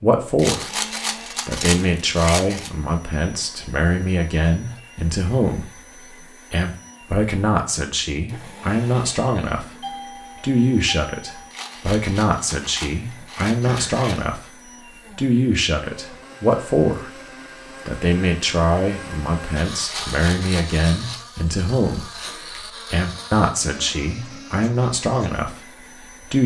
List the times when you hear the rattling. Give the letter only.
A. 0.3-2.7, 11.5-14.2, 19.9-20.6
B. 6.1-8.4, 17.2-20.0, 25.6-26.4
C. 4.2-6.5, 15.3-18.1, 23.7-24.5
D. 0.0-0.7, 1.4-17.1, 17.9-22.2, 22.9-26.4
A.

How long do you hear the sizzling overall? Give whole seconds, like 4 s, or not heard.
not heard.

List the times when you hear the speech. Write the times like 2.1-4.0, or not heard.
0.0-0.7, 1.4-17.1, 17.9-22.2, 22.9-26.4.